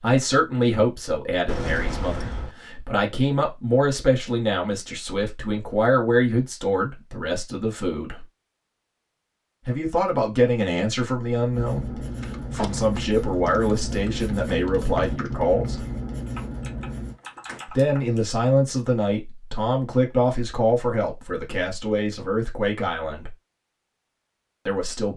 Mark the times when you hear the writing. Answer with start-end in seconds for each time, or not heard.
11.4-17.2.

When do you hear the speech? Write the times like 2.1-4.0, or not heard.
0.0-8.2, 9.7-15.8, 17.6-23.4, 24.6-25.1.